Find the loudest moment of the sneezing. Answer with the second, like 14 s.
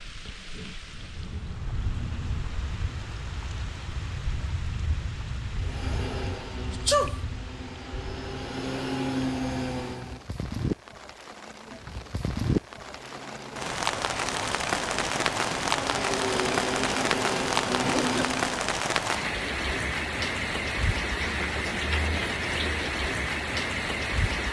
7 s.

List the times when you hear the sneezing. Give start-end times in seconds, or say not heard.
6.7-7.2, 17.8-18.3.